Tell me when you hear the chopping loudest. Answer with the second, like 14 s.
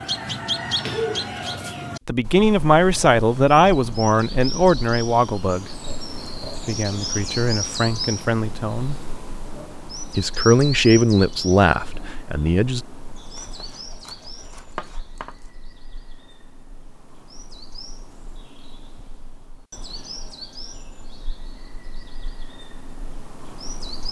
15 s.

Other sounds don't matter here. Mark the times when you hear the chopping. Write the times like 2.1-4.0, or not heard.
13.3-15.5.